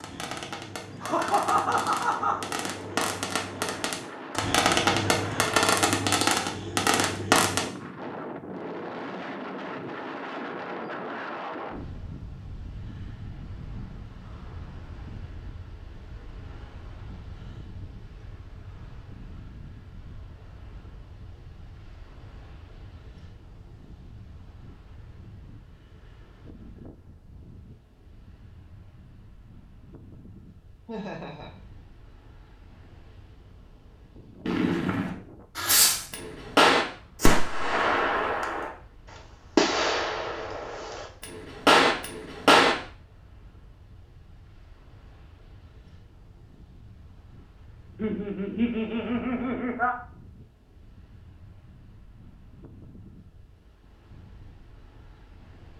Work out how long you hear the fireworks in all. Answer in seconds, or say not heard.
16 s.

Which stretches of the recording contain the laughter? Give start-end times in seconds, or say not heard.
1.0-2.4, 30.9-31.6, 48.0-50.0.